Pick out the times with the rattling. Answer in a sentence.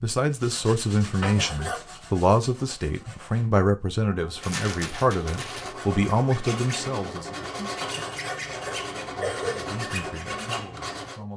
You can hear the rattling from 4.4 to 5.8 s.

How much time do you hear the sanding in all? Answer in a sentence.
You can hear the sanding for 11 seconds altogether.